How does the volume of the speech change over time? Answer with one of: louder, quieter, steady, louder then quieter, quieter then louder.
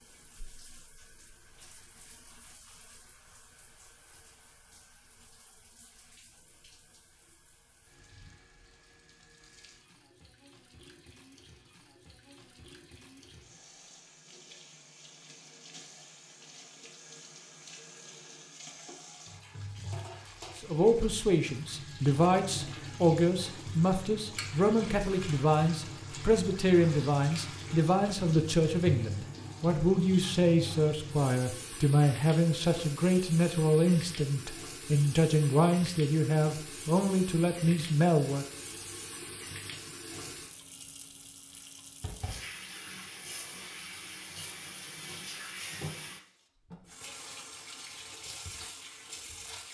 steady.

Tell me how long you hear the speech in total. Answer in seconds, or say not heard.
18 s.